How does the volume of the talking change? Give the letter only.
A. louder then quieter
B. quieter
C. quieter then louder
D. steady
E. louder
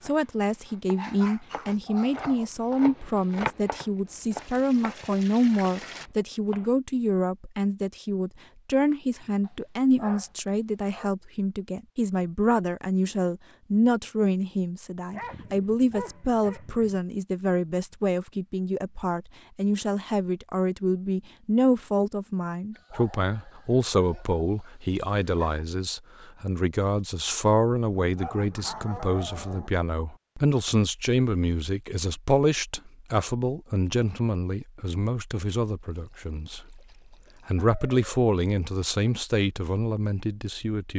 D.